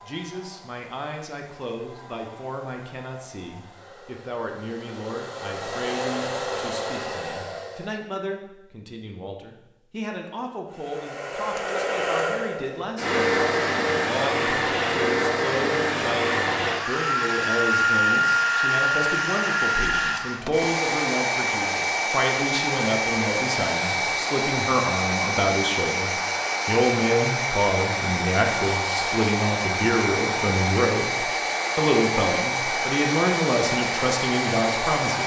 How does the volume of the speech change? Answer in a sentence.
The volume of the speech goes up.